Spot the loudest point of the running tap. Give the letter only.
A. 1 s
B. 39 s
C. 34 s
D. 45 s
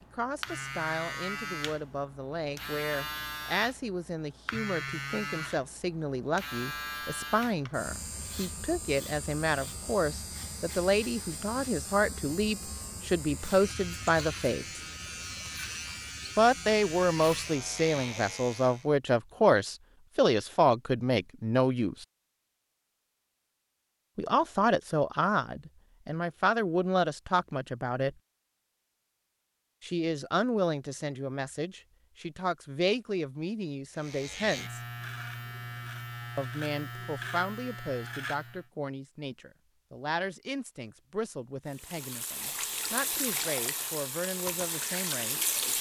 D.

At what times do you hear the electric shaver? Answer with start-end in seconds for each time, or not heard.
0.0-18.9, 34.0-38.6.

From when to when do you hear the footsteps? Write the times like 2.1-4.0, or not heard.
not heard.